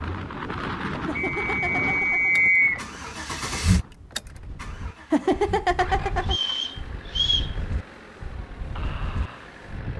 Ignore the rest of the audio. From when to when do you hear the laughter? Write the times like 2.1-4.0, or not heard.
1.1-2.4, 5.1-6.3.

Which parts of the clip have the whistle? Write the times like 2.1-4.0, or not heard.
1.1-2.8, 6.3-7.5.